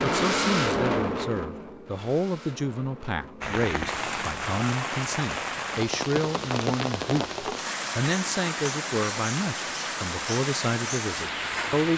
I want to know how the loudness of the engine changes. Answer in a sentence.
The volume of the engine goes down.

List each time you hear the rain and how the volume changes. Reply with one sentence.
The rain can be heard from 3.4 to 11.9 s, at a steady volume.